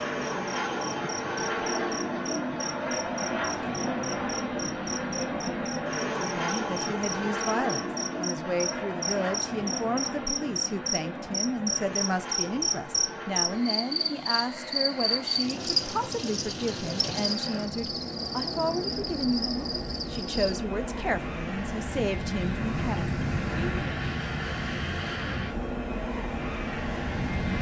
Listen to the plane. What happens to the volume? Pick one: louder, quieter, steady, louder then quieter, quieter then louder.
quieter then louder.